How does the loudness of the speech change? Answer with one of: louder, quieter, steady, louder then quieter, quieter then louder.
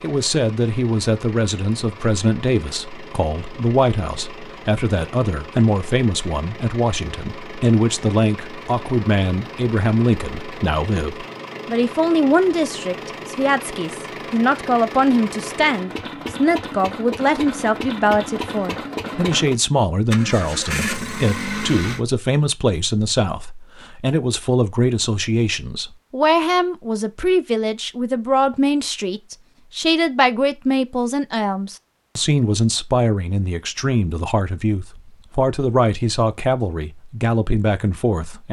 steady.